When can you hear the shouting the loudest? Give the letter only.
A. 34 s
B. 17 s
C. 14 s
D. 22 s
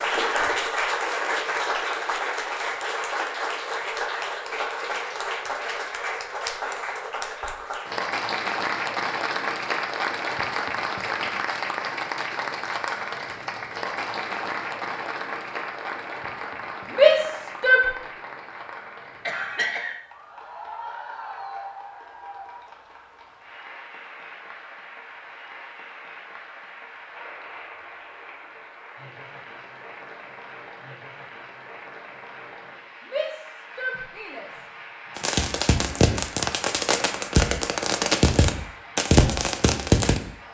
B.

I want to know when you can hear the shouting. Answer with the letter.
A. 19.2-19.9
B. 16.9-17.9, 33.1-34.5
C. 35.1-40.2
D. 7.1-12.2
B.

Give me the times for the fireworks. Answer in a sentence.
The fireworks can be heard from 35.1 to 40.2 s.